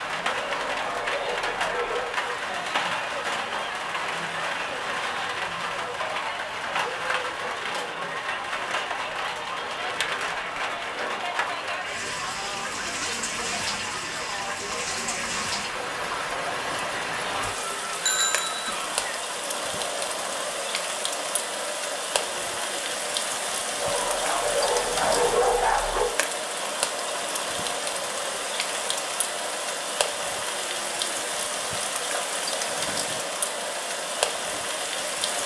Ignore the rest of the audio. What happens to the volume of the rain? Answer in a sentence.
The loudness of the rain stays about the same.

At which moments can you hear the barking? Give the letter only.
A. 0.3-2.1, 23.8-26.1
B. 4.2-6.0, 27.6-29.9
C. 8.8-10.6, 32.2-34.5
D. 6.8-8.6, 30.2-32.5
A.